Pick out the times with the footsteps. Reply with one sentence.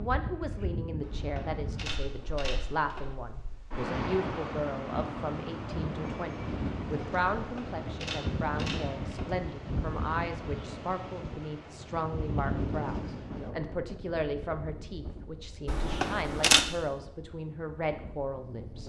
The footsteps can't be heard in this clip.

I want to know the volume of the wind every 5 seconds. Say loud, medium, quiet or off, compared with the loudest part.
loud, loud, loud, quiet.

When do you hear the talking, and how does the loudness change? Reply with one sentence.
You can hear the talking from 0.0 to 18.8 s, at a steady volume.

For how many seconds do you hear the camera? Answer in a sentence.
The camera can be heard for 5 seconds in total.